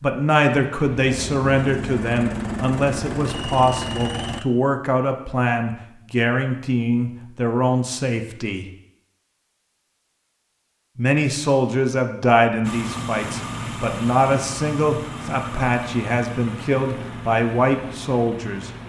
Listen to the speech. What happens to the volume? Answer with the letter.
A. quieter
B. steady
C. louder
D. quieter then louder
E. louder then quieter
B.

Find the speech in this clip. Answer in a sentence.
You can hear the speech from 0.0 to 8.7 s and from 10.9 to 18.7 s.